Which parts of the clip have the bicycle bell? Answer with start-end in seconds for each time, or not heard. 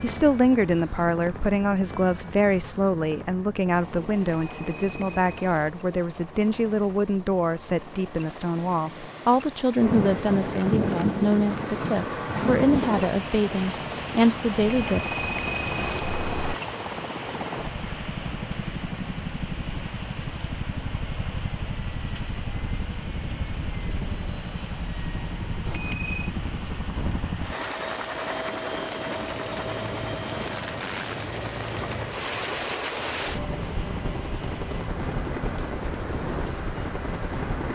4.2-5.5, 14.6-16.6, 25.6-26.3.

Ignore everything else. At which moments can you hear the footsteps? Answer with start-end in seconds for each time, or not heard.
not heard.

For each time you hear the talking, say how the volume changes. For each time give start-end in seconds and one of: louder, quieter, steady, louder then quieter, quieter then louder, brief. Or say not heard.
0.0-15.0 steady.